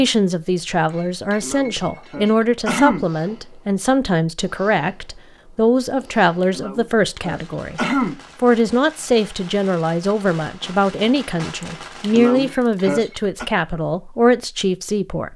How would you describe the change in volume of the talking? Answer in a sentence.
The volume of the talking stays about the same.